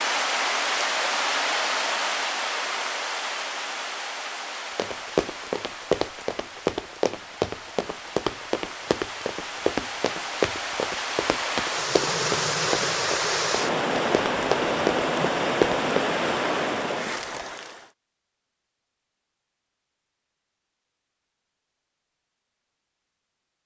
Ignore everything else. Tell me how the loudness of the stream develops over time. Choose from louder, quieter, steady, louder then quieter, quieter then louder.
quieter then louder.